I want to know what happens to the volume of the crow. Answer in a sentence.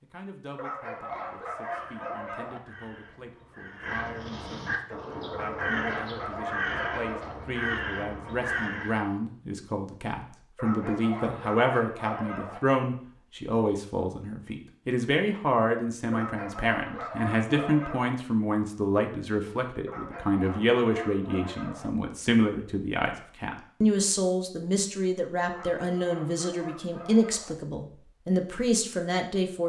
The loudness of the crow goes up.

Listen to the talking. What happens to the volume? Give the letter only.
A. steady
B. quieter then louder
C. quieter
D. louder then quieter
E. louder
E.